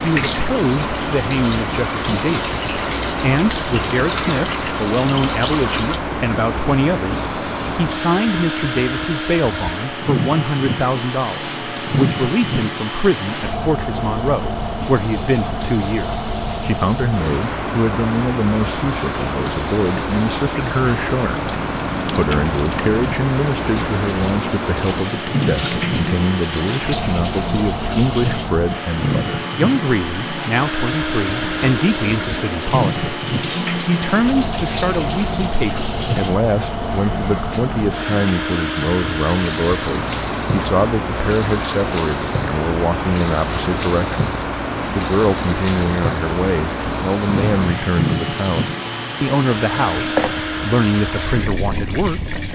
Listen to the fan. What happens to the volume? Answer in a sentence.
The loudness of the fan stays about the same.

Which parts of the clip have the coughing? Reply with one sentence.
The coughing can be heard from 47.2 to 47.9 s.